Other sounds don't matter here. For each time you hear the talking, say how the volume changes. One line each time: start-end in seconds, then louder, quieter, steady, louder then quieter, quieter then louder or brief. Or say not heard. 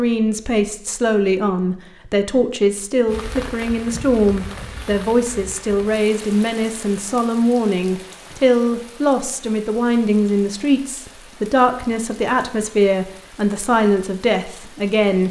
0.0-15.2 steady.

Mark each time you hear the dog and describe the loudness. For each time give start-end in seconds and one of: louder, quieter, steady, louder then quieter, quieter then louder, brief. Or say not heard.
not heard.